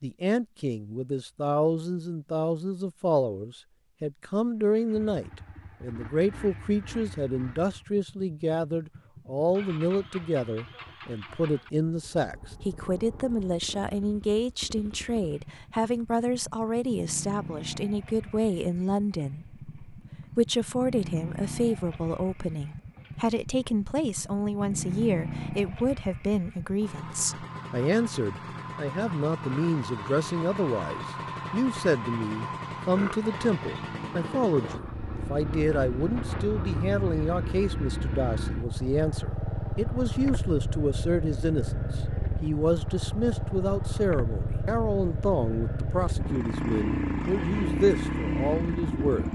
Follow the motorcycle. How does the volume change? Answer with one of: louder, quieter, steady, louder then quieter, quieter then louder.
louder.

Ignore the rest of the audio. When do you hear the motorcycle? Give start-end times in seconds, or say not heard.
4.7-49.2.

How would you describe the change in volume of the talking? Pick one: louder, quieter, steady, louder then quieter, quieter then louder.
steady.